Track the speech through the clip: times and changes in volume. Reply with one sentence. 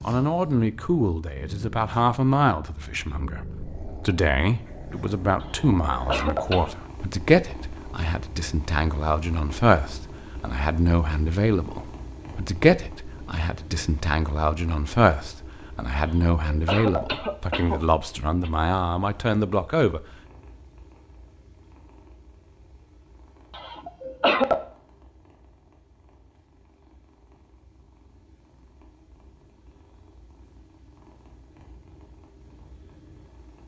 The speech can be heard from 0.0 to 20.1 s, at a steady volume.